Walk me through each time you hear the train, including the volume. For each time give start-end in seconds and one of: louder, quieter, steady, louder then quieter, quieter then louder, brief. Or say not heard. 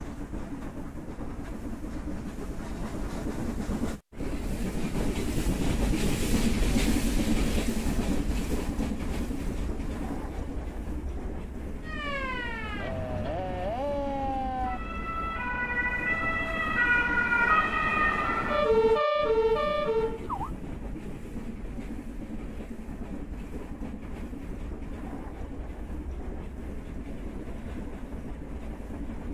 0.0-29.2 quieter.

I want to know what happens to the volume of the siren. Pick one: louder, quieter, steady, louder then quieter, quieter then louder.
louder.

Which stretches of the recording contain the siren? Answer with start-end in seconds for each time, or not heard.
11.8-20.6.